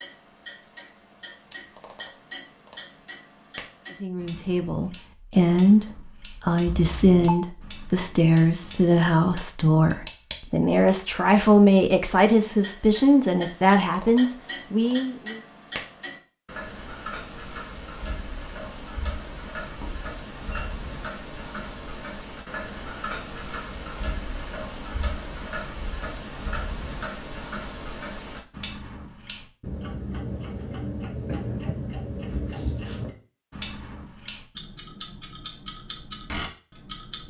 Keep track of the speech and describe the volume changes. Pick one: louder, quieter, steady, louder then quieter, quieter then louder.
steady.